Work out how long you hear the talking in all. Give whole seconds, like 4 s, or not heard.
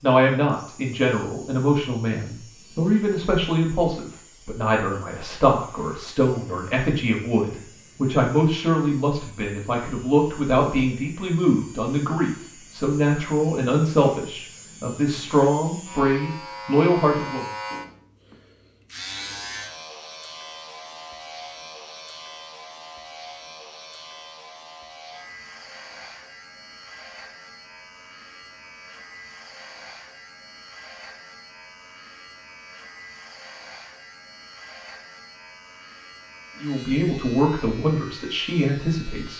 20 s.